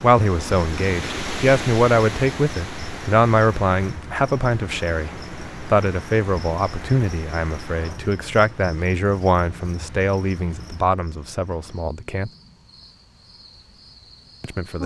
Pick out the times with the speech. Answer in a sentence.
The speech can be heard from 0.0 to 12.3 s and from 14.4 to 14.8 s.